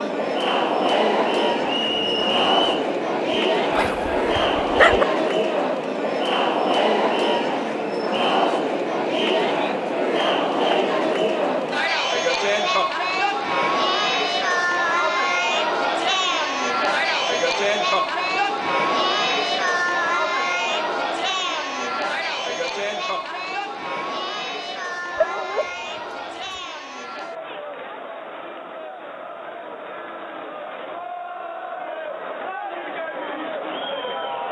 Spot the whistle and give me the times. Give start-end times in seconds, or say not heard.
1.6-2.9.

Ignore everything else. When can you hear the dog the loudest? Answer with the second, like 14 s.
5 s.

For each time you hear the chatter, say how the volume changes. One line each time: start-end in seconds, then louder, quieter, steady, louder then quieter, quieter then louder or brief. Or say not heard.
0.0-34.4 quieter.